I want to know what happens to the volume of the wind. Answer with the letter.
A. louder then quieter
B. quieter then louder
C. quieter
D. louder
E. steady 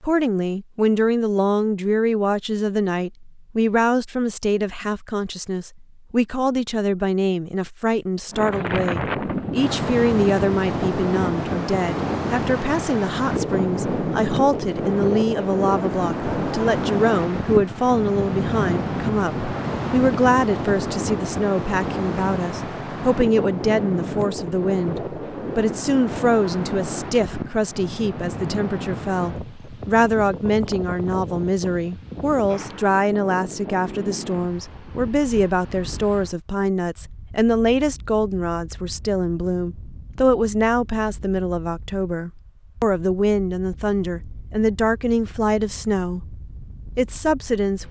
C.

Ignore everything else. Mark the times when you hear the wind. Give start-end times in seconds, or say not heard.
8.3-47.8.